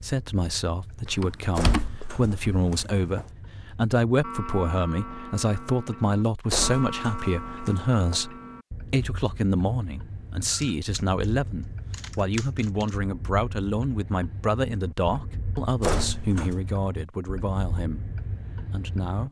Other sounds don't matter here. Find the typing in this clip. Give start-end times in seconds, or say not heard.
1.1-2.9, 10.5-11.2, 11.9-12.9.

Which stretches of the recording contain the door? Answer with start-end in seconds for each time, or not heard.
1.6-3.3, 6.5-8.2, 15.8-16.6.